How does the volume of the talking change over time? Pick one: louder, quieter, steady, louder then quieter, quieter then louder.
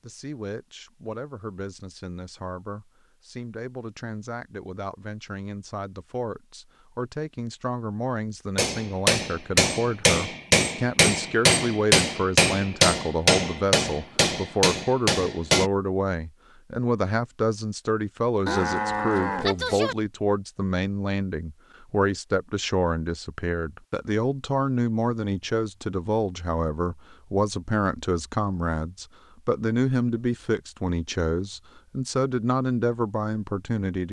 louder.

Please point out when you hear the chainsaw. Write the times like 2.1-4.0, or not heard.
not heard.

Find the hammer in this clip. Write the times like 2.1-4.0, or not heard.
8.6-15.7.